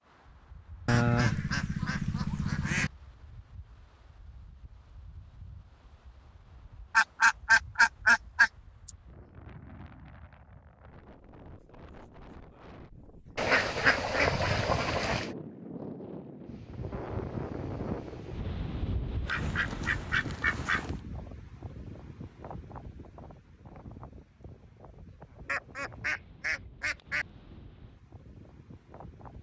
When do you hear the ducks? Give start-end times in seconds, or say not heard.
0.8-2.9, 6.9-8.9, 13.3-15.3, 19.2-20.9, 25.4-27.2.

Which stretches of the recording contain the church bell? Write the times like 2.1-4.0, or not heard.
not heard.